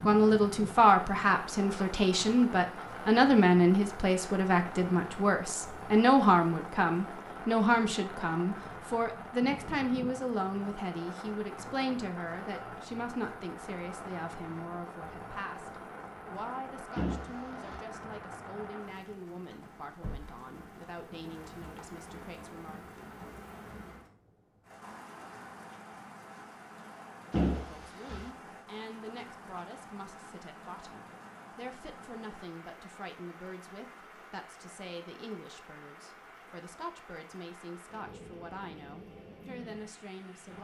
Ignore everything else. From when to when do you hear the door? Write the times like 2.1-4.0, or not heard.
16.9-17.8, 27.3-28.3.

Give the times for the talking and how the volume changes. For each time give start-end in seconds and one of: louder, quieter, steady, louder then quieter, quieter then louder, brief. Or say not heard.
0.0-22.9 quieter
27.6-40.5 steady.